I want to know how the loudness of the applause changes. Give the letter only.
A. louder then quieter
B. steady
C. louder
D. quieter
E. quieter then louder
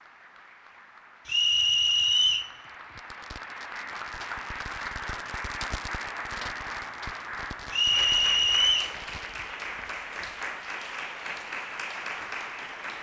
C.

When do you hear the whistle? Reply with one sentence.
You can hear the whistle from 1.2 to 2.5 s and from 7.7 to 8.9 s.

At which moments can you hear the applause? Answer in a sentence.
You can hear the applause from 0.0 to 12.9 s.